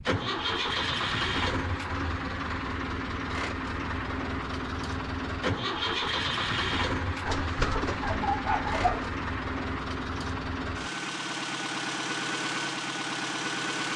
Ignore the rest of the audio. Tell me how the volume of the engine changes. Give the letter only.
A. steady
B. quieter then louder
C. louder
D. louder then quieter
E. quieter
A.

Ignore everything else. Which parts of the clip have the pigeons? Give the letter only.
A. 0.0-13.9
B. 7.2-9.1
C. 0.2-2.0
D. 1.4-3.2
B.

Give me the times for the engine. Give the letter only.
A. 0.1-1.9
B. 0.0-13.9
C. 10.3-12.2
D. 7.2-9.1
B.